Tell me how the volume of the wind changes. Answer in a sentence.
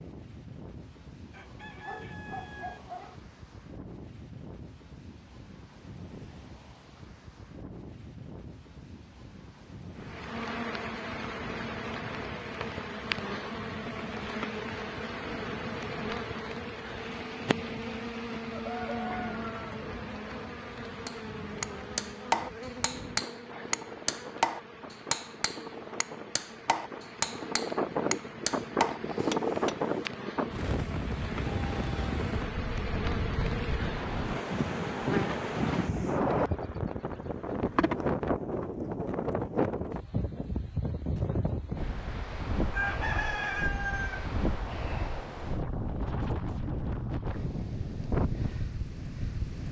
The loudness of the wind goes up.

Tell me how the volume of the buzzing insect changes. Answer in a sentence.
The loudness of the buzzing insect goes down, then up.